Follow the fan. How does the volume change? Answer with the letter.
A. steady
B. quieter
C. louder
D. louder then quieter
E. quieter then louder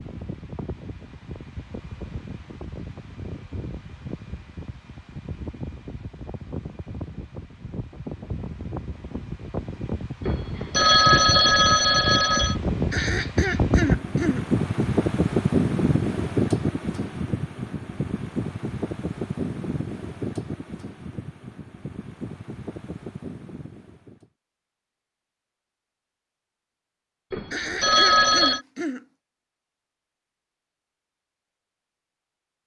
D.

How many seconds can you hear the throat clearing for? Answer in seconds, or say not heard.
3 s.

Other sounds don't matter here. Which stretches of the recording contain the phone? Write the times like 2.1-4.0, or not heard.
10.2-12.6, 27.3-28.6.